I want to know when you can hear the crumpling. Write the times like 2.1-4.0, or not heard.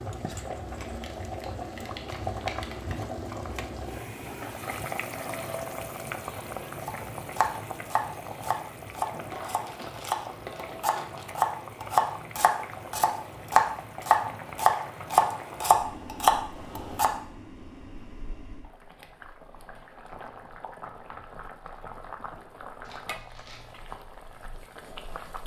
0.7-3.0, 9.3-11.2, 22.8-23.9.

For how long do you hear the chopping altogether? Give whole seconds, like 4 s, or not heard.
10 s.